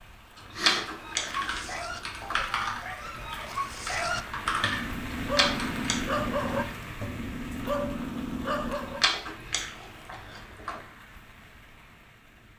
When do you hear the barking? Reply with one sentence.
The barking can be heard from 0.8 to 9.0 s.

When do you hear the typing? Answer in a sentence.
You can hear the typing from 0.5 to 6.0 s.